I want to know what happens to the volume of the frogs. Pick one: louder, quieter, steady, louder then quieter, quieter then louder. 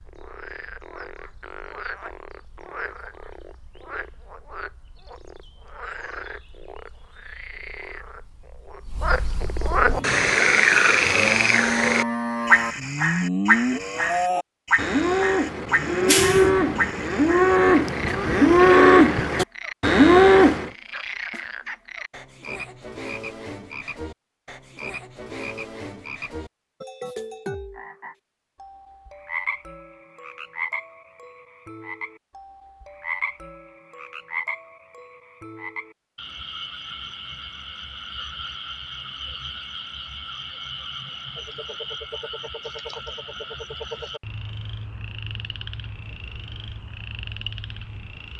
louder then quieter.